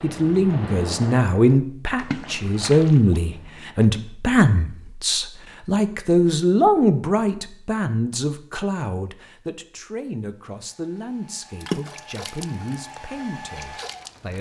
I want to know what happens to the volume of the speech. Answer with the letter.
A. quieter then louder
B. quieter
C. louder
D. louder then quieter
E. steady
B.